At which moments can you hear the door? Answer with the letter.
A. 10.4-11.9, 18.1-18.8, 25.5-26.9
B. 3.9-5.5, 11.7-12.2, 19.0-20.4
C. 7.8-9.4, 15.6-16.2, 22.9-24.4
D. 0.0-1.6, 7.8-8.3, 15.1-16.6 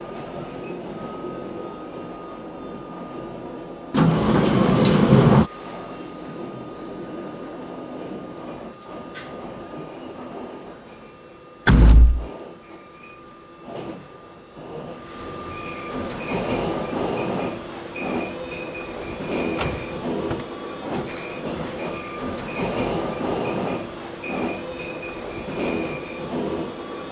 B.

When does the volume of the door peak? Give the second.
5 s.